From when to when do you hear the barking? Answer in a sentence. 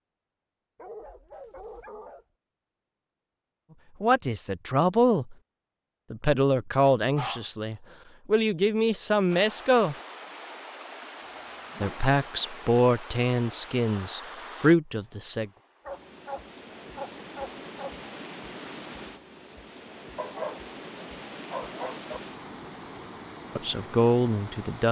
The barking can be heard from 0.8 to 2.2 s, from 7.0 to 8.0 s, from 11.2 to 12.7 s, from 15.8 to 18.0 s and from 20.1 to 22.2 s.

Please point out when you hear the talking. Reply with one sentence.
You can hear the talking from 4.0 to 5.3 s, from 6.1 to 9.9 s, from 11.8 to 15.5 s and from 23.6 to 24.8 s.